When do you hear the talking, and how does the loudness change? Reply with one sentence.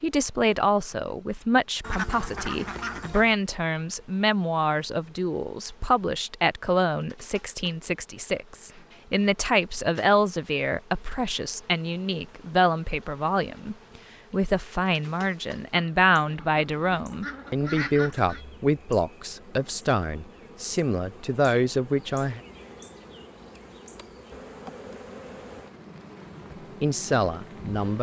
You can hear the talking from 0.0 to 22.4 s, at a steady volume; and briefly from 26.8 to 27.9 s.